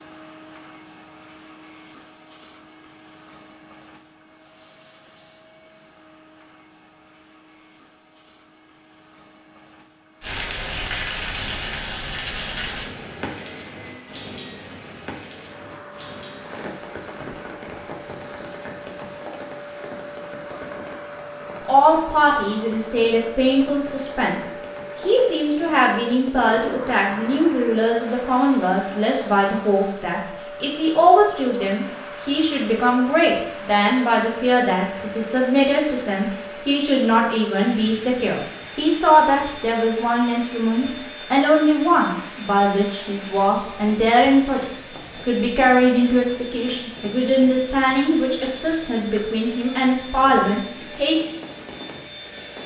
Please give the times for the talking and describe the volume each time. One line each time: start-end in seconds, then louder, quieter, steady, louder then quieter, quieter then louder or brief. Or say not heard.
21.6-51.1 steady.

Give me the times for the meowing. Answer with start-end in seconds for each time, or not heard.
not heard.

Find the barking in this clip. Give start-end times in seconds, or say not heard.
not heard.